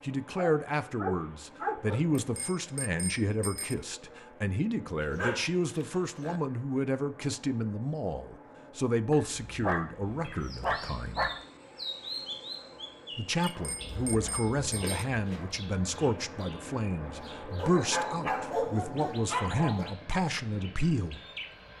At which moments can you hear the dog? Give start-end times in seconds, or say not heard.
0.3-2.2, 5.0-6.4, 9.1-11.4, 13.4-15.6, 17.6-19.9.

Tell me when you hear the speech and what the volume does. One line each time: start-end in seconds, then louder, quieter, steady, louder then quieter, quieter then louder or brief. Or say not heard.
0.0-11.3 steady
13.2-21.1 steady.